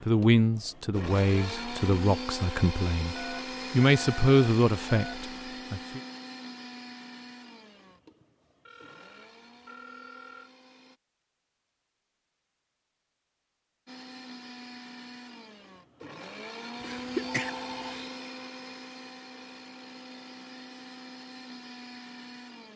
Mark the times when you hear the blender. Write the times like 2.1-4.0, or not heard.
0.0-11.0, 13.8-22.7.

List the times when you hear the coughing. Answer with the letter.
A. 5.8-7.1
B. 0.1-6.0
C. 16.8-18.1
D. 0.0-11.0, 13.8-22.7
C.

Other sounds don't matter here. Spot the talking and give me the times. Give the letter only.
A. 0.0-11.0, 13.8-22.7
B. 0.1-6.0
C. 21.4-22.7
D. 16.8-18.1
B.